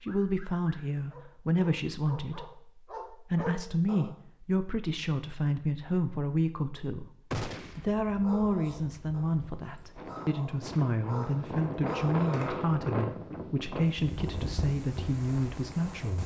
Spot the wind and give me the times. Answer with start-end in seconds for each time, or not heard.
7.9-16.2.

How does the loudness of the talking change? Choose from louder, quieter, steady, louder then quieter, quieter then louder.
steady.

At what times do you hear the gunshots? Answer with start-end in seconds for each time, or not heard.
7.3-7.8.